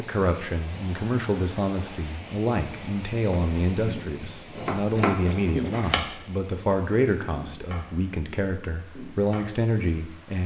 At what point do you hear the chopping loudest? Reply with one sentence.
The volume of the chopping peaks at 5 seconds.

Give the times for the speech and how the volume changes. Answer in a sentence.
You can hear the speech from 0.0 to 10.4 s, at a steady volume.